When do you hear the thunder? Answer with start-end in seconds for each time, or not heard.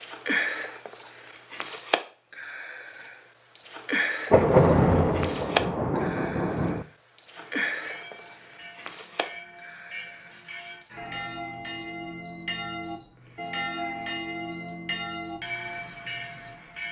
4.3-6.8.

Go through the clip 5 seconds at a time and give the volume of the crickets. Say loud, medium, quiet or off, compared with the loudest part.
loud, loud, quiet, quiet.